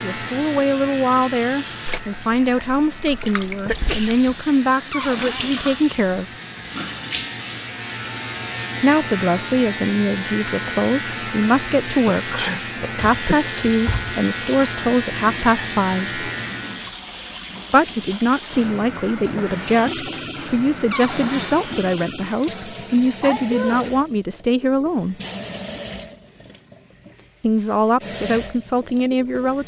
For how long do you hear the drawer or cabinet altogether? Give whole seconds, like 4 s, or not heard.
3 s.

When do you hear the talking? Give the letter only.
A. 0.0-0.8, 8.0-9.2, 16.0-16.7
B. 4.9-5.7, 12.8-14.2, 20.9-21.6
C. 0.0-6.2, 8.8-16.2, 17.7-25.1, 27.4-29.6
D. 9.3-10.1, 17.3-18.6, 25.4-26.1
C.